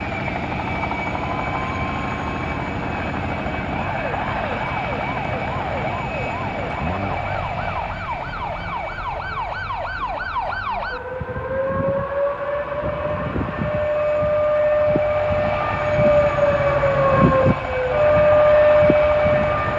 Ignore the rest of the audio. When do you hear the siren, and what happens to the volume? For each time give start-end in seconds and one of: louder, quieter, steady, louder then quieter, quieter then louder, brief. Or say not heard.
0.0-19.7 louder.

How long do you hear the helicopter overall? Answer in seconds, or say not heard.
20 s.